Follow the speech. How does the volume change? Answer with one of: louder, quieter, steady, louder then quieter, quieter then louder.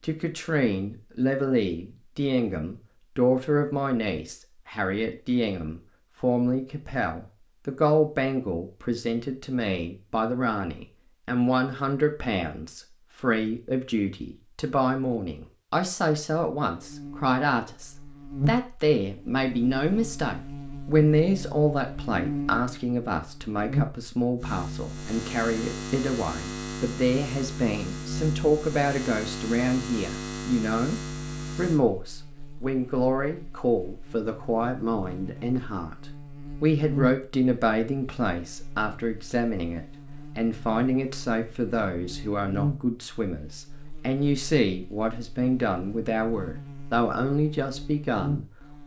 steady.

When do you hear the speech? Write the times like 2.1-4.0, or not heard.
0.0-36.0, 36.6-48.8.